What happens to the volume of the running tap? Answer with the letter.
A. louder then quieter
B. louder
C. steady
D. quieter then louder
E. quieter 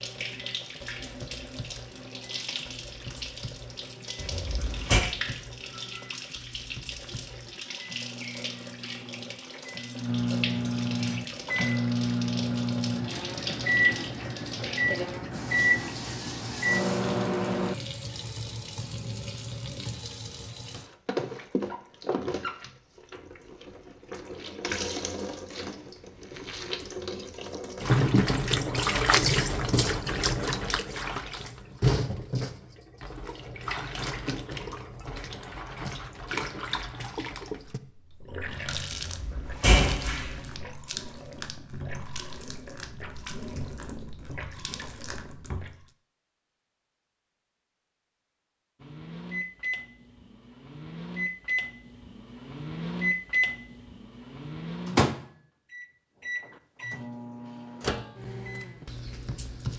A.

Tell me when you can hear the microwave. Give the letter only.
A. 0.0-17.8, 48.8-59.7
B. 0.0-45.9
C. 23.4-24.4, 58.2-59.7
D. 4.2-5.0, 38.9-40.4
A.